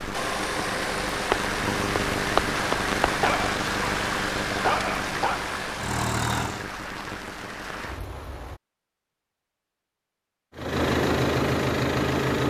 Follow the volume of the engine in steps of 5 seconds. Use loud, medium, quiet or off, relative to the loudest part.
medium, medium, loud.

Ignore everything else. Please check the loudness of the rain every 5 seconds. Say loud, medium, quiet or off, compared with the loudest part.
loud, medium, off.